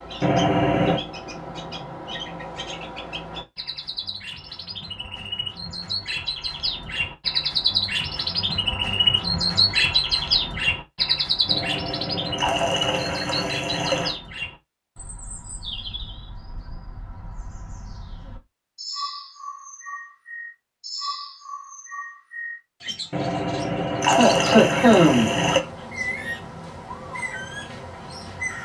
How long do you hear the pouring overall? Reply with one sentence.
The pouring can be heard for 6 seconds in total.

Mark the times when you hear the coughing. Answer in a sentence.
You can hear the coughing from 24.1 to 25.4 s.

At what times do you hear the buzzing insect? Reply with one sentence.
The buzzing insect can't be heard in this clip.